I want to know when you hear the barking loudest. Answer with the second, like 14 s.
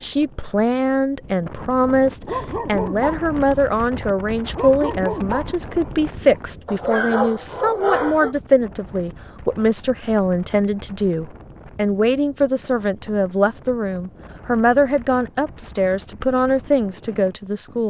7 s.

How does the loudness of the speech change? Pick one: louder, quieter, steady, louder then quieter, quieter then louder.
steady.